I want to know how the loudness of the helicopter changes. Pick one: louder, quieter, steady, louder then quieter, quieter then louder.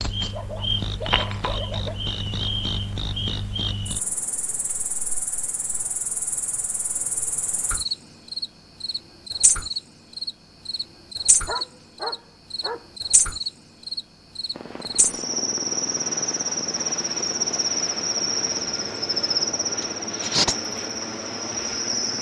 steady.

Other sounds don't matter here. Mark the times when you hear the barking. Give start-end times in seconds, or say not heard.
0.3-2.1, 11.4-12.8.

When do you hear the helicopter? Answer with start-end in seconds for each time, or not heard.
14.5-22.1.